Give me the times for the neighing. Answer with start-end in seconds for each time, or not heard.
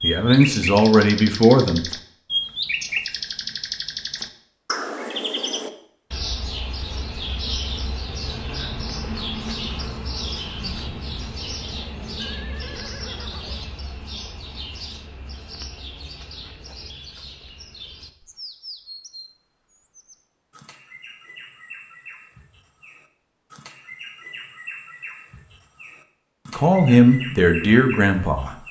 12.2-13.7.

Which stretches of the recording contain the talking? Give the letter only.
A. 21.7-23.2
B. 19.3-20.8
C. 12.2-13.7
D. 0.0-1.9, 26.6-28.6
D.